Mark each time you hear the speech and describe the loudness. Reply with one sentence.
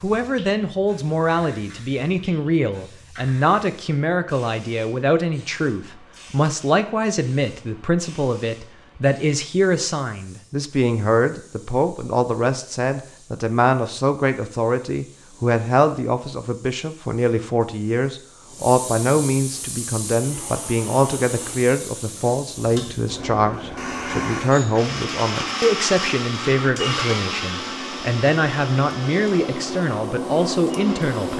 The speech can be heard from 0.0 to 31.3 s, at a steady volume.